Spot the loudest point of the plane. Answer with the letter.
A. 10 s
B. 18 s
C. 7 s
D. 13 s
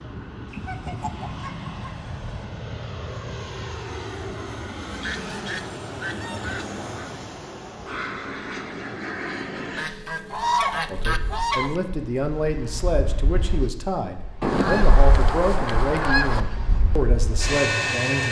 B.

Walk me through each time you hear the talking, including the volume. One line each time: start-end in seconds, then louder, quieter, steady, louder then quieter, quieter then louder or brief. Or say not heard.
10.9-18.2 steady.